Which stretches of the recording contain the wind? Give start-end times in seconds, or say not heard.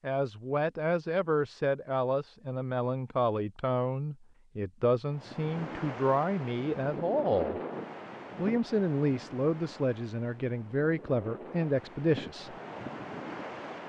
5.1-13.8.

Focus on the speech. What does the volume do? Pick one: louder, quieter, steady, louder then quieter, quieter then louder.
steady.